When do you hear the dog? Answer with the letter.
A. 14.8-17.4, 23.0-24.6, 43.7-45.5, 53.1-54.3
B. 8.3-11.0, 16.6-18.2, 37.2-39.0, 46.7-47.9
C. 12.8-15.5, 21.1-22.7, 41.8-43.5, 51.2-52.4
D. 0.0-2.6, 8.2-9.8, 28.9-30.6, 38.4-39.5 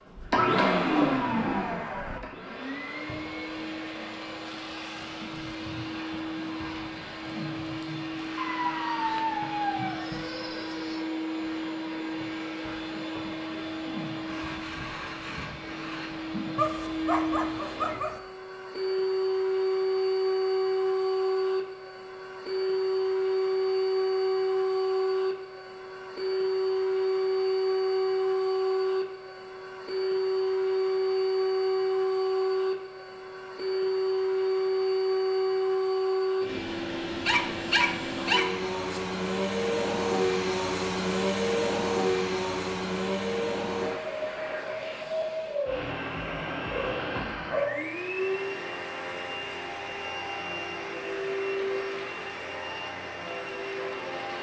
B.